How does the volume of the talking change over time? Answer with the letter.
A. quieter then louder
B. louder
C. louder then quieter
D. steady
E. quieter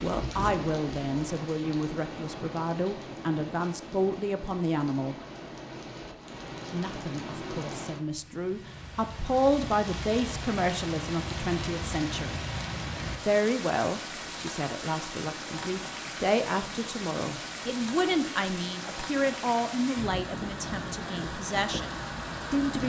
D.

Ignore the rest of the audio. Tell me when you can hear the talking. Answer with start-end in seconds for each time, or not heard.
0.0-5.2, 6.7-12.4, 13.2-22.8.